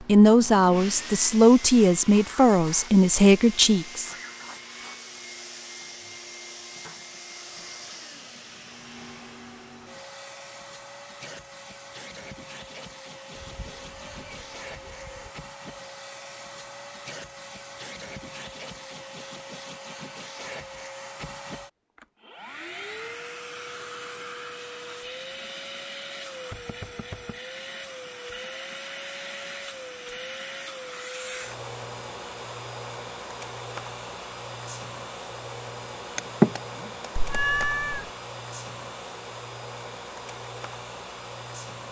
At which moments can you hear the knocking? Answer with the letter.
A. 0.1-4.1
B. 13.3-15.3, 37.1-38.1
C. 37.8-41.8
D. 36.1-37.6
D.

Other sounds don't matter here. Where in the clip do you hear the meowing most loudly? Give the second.
38 s.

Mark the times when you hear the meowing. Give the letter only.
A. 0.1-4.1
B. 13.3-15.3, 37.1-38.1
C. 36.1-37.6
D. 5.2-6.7
B.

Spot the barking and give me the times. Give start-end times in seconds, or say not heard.
not heard.